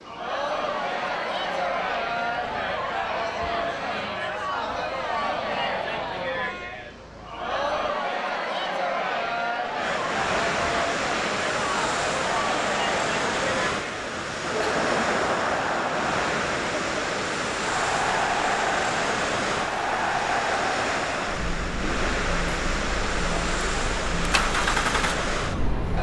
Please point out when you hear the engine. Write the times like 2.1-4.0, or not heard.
24.1-25.8.